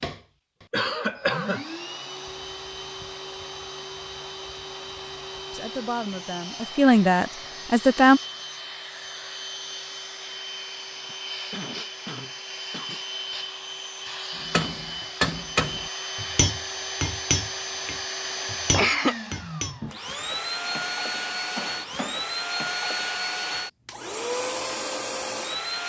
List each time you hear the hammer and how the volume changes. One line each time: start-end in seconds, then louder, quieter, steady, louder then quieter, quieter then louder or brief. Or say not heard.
14.3-22.2 quieter.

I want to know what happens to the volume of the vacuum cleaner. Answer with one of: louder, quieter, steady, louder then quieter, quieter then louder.
louder.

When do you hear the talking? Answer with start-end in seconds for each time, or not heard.
5.5-8.2.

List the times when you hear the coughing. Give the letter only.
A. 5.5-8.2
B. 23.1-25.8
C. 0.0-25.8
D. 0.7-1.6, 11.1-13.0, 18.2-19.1
D.